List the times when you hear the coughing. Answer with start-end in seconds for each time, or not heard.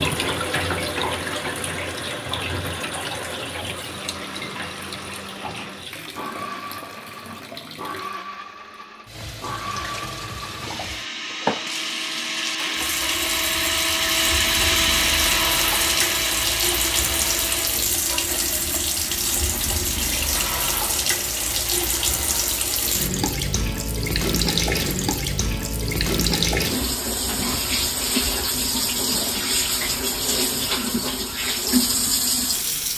not heard.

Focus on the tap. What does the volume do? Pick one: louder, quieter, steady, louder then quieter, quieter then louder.
louder.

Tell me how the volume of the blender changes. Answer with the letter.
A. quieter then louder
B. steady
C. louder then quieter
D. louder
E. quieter
D.